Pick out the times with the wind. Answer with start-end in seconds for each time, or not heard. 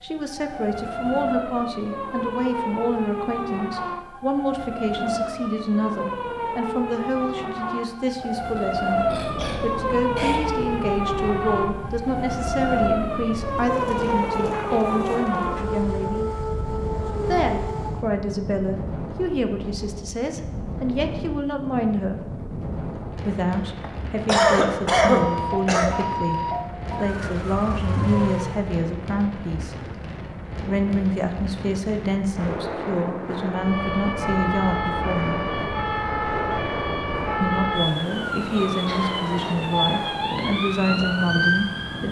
8.9-42.0.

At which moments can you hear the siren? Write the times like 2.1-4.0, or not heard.
0.0-18.1, 25.1-28.6, 33.5-42.0.